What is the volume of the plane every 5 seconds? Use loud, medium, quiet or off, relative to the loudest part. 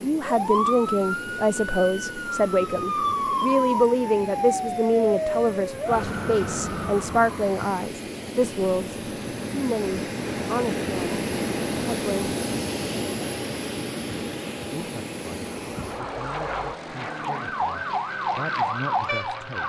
medium, medium, loud, medium.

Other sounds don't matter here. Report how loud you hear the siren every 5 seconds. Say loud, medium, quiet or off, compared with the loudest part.
loud, loud, off, loud.